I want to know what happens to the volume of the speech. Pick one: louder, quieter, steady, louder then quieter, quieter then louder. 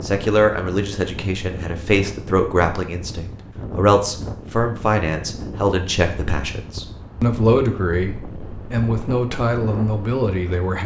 steady.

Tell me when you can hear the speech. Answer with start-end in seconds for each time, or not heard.
0.0-10.8.